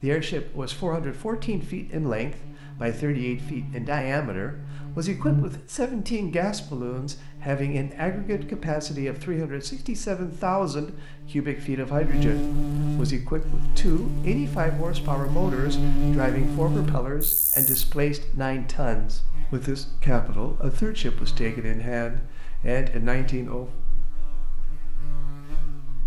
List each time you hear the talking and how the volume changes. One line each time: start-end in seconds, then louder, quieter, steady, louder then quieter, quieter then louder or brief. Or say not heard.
0.0-23.7 steady.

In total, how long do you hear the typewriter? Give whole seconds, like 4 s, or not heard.
not heard.